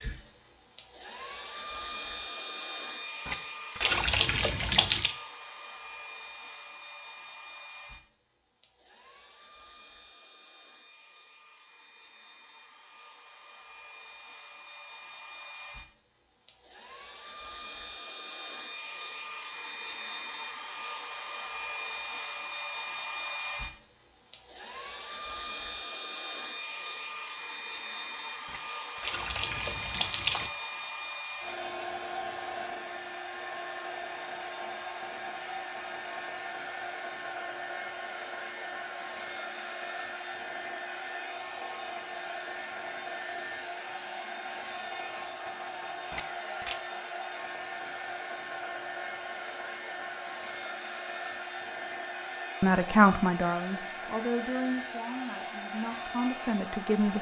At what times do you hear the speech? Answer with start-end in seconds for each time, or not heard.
52.6-57.1.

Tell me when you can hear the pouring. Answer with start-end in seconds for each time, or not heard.
3.2-5.2, 28.4-30.5, 46.1-46.8.